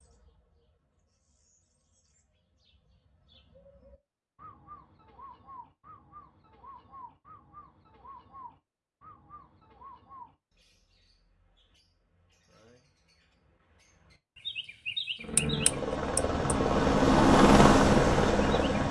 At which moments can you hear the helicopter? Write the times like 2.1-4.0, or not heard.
15.2-18.8.